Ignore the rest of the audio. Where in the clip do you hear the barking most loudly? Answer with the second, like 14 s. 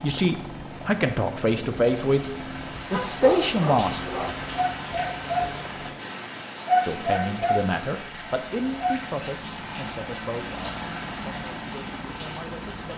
7 s.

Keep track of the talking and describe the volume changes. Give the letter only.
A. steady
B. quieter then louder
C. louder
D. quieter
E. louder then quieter
D.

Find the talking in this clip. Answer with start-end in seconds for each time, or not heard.
0.0-4.1, 6.8-12.9.